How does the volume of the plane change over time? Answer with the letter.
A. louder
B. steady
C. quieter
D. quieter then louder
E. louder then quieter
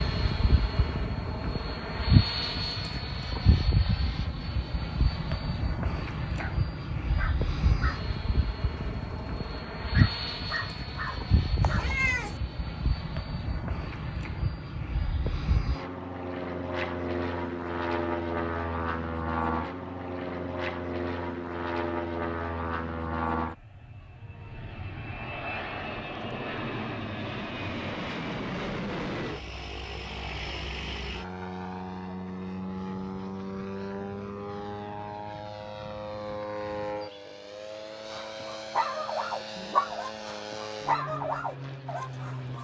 C.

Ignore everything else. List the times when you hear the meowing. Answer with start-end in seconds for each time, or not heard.
11.6-12.4.